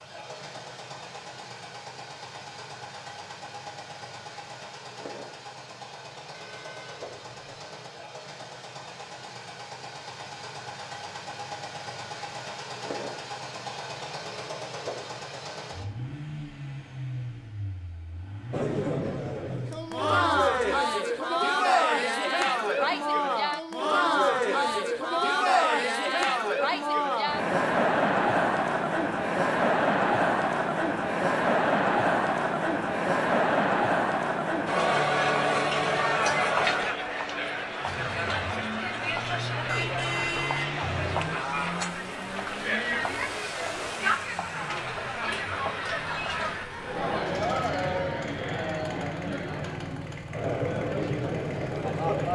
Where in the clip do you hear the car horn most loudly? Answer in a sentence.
The loudest moment of the car horn is at 40 seconds.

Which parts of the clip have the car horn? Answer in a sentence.
You can hear the car horn from 6.3 to 7.5 s and from 39.6 to 41.5 s.